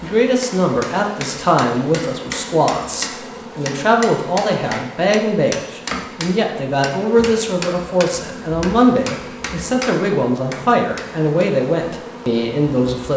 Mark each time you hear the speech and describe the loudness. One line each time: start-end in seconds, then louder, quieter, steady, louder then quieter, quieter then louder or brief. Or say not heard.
0.0-13.1 steady.